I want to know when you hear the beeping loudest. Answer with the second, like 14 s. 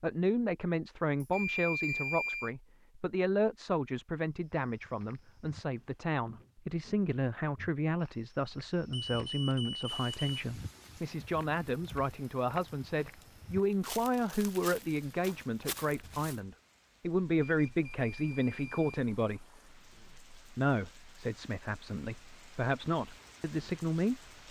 2 s.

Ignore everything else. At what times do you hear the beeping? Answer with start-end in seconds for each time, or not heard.
1.2-2.5, 8.9-10.3, 17.4-19.0.